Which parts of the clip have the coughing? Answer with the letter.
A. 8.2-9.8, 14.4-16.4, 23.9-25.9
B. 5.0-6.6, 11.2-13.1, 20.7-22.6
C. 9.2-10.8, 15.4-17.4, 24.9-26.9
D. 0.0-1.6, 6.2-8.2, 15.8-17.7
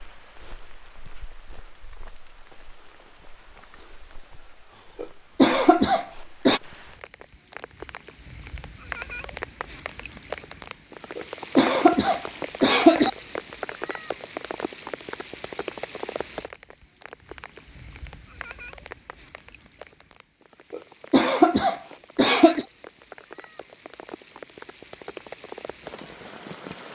B.